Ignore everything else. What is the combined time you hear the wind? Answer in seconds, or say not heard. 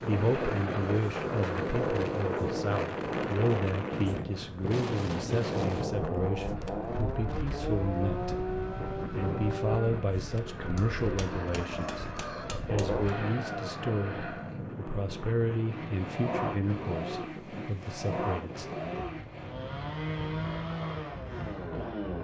22 s.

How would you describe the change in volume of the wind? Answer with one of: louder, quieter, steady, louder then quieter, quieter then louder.
quieter.